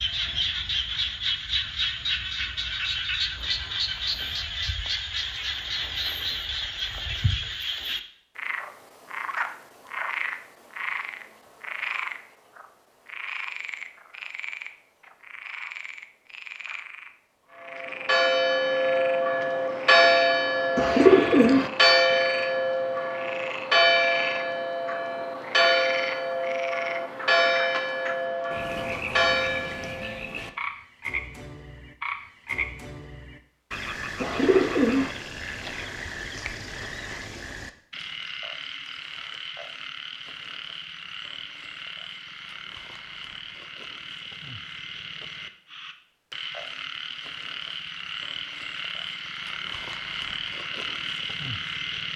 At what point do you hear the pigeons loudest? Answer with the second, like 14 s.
21 s.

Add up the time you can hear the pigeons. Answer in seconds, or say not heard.
2 s.